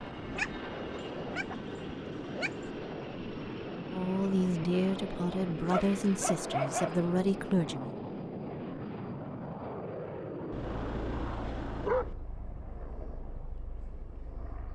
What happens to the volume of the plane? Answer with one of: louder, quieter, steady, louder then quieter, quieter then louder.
quieter.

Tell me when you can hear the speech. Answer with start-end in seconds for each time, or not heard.
3.9-8.0.